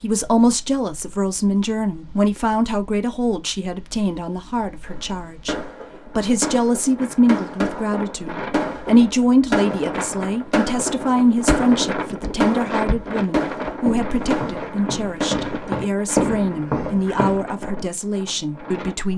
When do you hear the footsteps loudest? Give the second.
16 s.